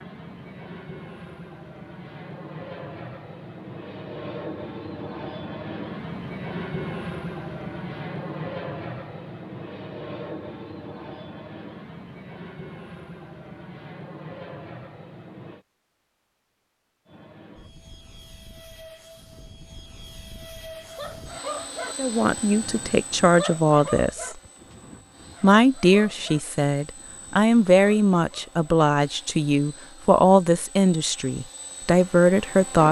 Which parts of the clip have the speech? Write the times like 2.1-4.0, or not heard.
21.9-24.4, 25.4-32.8.